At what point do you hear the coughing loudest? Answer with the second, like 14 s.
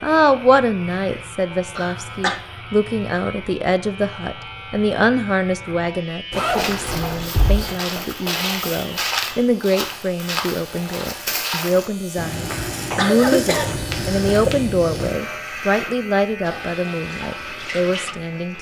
13 s.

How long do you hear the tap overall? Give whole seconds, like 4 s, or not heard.
2 s.